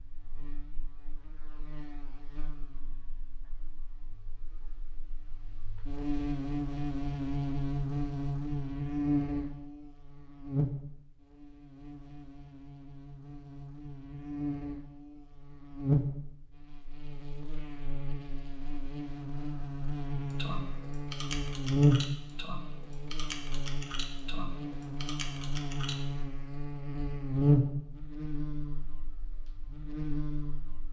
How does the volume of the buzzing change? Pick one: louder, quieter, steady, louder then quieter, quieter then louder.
louder.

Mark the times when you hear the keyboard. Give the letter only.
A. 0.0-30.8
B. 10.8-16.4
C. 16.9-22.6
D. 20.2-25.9
D.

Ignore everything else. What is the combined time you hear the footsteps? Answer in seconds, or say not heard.
not heard.